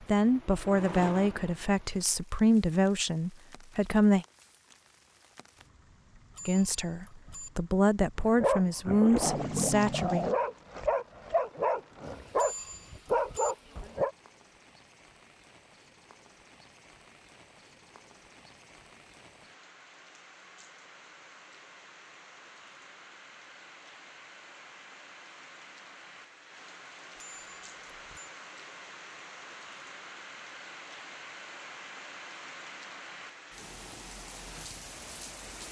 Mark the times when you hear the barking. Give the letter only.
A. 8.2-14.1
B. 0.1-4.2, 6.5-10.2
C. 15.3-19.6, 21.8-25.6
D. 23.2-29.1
A.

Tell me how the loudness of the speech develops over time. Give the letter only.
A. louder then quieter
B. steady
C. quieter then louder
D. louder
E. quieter
B.